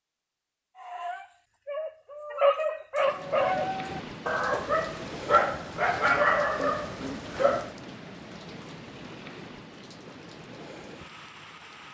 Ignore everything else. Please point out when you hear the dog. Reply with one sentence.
The dog can be heard from 0.8 to 7.7 s.